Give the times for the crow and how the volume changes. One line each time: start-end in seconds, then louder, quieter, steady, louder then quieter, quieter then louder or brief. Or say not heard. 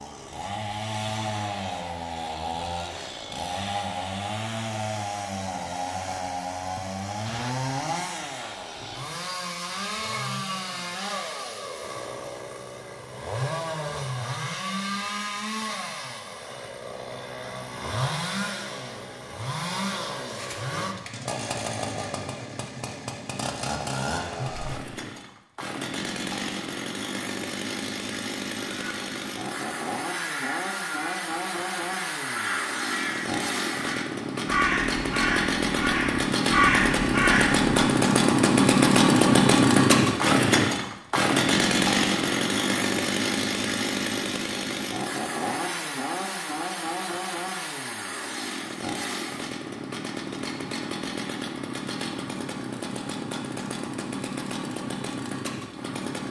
28.6-37.9 louder.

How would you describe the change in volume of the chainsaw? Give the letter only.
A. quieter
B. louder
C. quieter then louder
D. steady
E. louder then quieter
E.